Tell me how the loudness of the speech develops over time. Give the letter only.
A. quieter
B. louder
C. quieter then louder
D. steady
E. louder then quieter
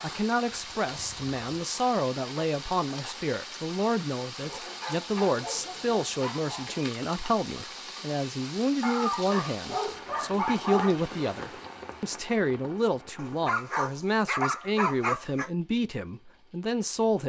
D.